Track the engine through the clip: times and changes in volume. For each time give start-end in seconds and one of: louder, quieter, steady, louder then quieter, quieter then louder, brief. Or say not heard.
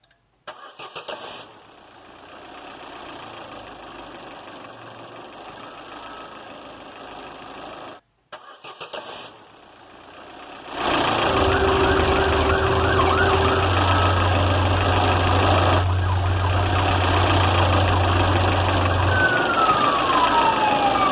0.0-21.0 louder.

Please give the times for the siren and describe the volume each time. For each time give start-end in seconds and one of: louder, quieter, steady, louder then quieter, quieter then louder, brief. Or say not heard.
11.2-21.0 quieter then louder.